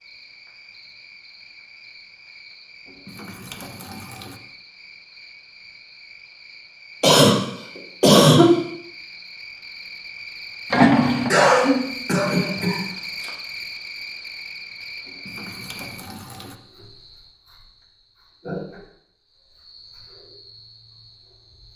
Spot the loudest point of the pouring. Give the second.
11 s.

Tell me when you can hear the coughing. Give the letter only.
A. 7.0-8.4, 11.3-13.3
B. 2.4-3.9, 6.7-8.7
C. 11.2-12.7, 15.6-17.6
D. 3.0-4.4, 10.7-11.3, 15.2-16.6
A.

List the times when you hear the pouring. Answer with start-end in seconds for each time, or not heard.
3.0-4.4, 10.7-11.3, 15.2-16.6.